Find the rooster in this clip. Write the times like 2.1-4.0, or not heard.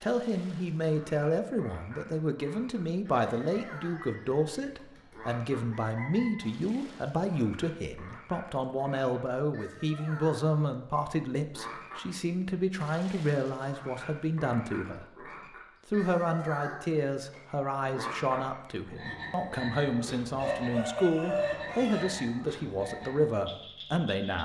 3.0-6.4, 20.4-22.1.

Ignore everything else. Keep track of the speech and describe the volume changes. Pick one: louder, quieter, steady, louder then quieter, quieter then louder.
steady.